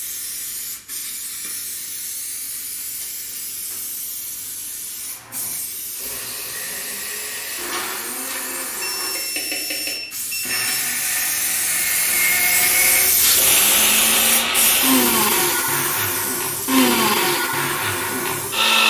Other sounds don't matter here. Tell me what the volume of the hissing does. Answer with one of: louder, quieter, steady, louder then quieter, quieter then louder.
louder then quieter.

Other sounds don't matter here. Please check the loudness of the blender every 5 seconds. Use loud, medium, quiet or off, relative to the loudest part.
off, quiet, loud, loud.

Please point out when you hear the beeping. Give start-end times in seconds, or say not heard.
8.8-10.6.